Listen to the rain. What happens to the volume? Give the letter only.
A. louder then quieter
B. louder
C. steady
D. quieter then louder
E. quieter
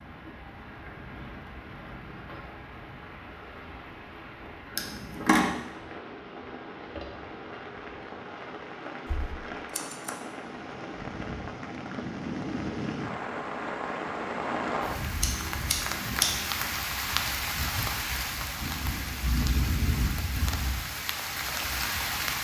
B.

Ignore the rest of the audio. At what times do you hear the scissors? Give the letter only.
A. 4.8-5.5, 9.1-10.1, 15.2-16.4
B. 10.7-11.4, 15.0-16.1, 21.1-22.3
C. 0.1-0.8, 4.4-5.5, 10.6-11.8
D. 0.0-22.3
A.